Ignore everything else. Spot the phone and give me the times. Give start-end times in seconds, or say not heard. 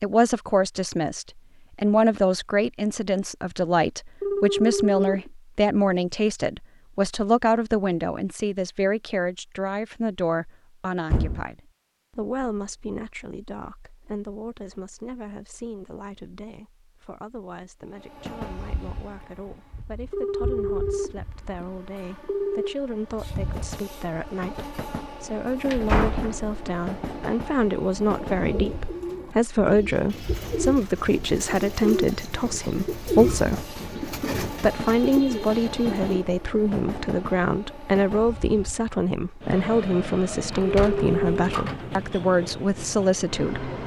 4.2-5.3, 20.1-22.8, 40.7-41.5.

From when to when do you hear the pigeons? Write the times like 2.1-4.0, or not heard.
28.0-36.2.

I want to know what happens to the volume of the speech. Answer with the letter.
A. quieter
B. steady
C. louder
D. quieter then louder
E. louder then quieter
D.